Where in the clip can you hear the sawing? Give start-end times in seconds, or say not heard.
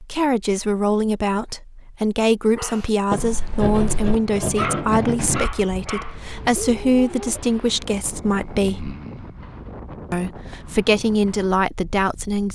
3.1-5.5.